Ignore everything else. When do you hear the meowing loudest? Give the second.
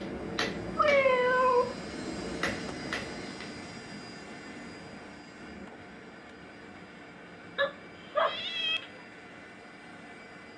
1 s.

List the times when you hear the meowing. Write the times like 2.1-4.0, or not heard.
0.8-1.8, 7.5-8.8.